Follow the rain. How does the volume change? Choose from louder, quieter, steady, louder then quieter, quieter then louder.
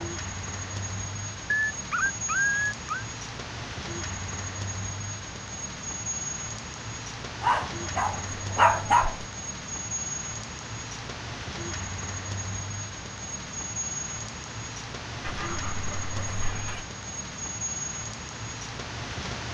steady.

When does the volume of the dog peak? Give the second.
9 s.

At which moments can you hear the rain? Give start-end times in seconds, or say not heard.
0.0-19.5.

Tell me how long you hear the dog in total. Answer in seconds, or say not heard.
5 s.